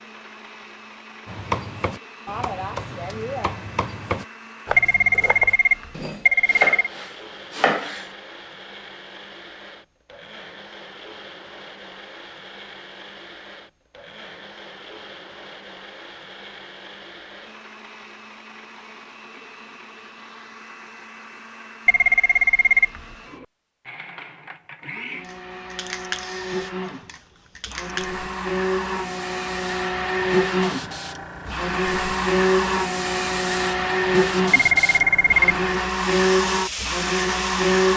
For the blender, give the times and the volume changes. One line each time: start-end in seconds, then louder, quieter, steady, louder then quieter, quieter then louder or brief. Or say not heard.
0.0-37.9 louder.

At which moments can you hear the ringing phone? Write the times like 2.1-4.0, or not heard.
4.8-6.9, 21.9-23.1, 34.5-35.4.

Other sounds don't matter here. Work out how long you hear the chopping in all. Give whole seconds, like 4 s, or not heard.
7 s.